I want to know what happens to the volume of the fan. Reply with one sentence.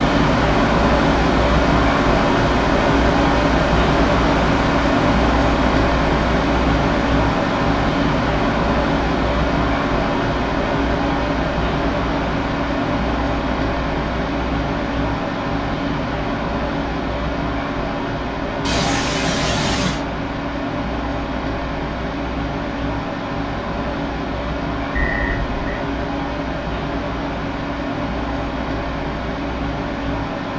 The loudness of the fan goes down.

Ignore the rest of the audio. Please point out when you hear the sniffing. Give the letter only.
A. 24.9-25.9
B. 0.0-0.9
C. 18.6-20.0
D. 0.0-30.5
C.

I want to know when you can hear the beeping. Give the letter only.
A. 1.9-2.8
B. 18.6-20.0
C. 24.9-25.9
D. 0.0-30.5
C.